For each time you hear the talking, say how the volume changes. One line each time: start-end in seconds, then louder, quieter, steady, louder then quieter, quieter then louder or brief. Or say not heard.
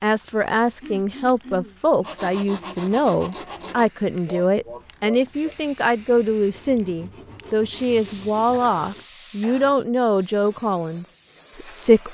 0.0-12.0 steady.